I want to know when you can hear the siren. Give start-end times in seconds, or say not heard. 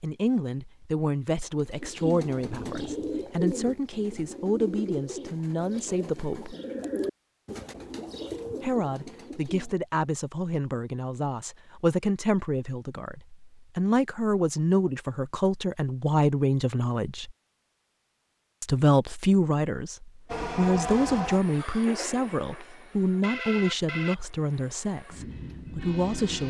not heard.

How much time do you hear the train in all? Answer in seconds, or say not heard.
6 s.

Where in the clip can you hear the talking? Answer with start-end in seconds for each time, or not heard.
0.0-6.5, 8.6-17.3, 18.6-26.4.